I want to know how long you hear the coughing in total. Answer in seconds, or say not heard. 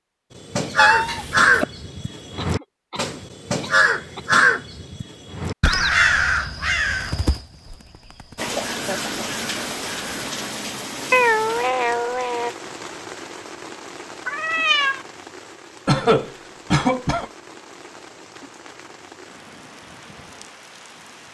4 s.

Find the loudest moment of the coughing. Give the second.
16 s.